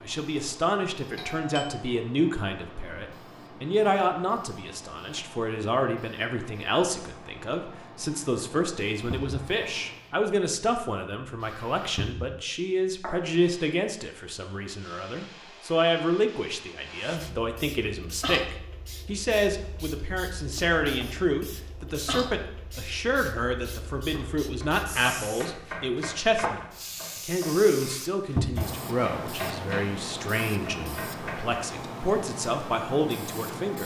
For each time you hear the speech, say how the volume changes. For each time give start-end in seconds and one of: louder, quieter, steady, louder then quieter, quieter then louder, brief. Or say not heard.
0.0-33.8 steady.